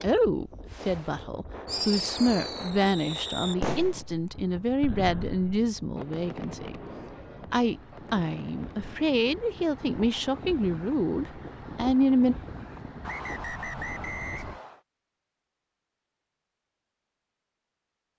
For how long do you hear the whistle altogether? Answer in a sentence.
The whistle can be heard for 2 seconds in total.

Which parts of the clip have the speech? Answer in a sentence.
The speech can be heard from 0.0 to 6.8 s and from 7.5 to 12.3 s.